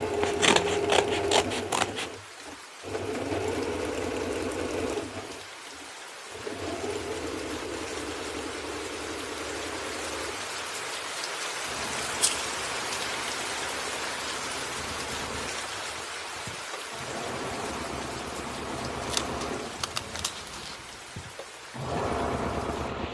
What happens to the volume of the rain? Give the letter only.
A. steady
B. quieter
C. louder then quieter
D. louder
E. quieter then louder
C.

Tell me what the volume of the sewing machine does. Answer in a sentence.
The loudness of the sewing machine goes down, then up.